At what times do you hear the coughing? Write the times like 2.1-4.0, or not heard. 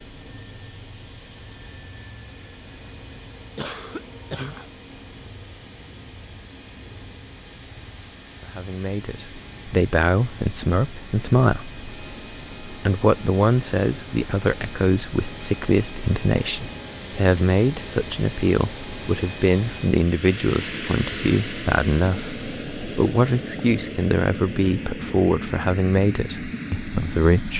3.5-4.7.